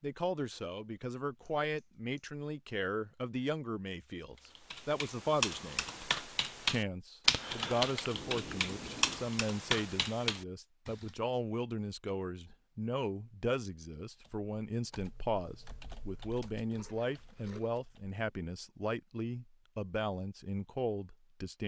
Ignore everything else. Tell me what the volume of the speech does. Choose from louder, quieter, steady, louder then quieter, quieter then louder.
steady.